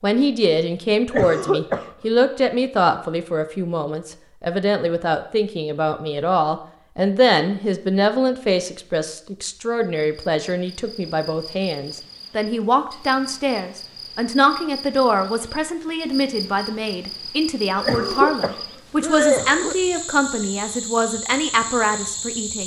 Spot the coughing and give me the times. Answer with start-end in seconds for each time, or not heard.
1.1-1.9, 17.8-19.8.